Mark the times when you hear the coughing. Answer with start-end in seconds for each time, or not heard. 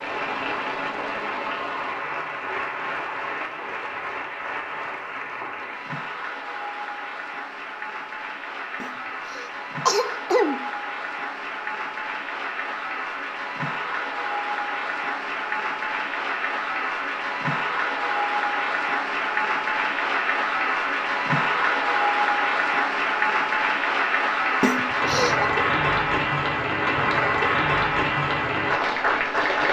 8.8-10.7, 24.6-25.5.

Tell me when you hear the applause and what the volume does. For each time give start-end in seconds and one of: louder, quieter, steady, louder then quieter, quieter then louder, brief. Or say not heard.
0.0-29.6 louder.